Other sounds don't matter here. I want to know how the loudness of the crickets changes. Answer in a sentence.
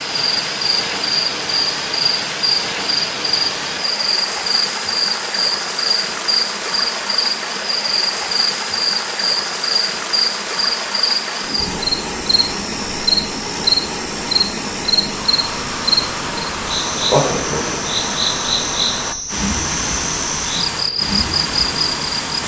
The loudness of the crickets stays about the same.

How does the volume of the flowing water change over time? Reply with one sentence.
The volume of the flowing water stays about the same.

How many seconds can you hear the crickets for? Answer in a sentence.
You can hear the crickets for 22 seconds altogether.